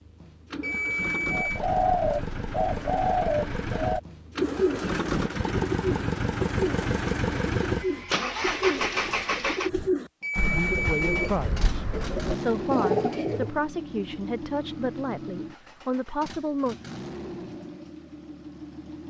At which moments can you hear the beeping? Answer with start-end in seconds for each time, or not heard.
0.6-1.6, 10.2-11.3.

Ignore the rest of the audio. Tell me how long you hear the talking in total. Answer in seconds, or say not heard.
6 s.